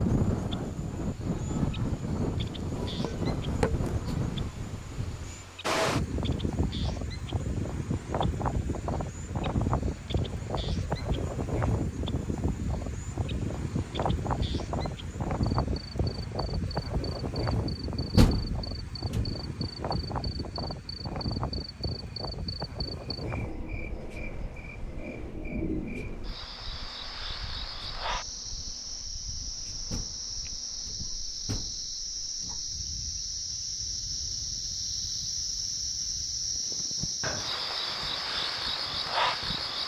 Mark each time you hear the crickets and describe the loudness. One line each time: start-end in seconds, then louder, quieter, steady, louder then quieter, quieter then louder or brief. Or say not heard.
0.0-39.8 louder.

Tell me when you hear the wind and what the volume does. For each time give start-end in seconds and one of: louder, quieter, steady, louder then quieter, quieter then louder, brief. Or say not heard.
0.0-39.8 quieter.